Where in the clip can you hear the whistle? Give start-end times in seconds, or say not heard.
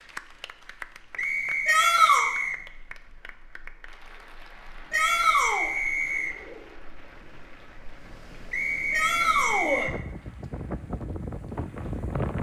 1.1-2.6, 4.9-6.4, 8.5-9.9.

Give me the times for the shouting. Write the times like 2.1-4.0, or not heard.
1.6-2.2, 4.9-5.7, 8.9-9.9.